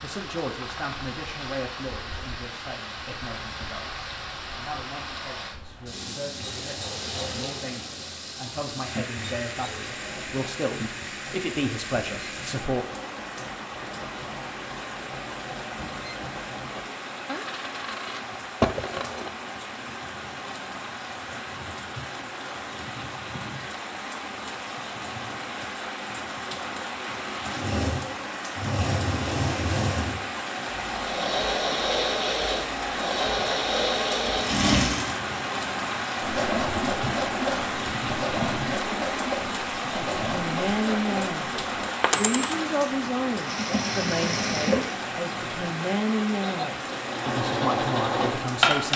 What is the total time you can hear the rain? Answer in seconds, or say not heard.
49 s.